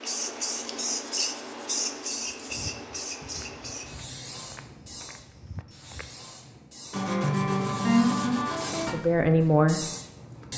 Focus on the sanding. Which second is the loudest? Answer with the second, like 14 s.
8 s.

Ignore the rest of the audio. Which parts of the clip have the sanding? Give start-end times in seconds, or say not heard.
0.1-2.5, 6.9-8.9.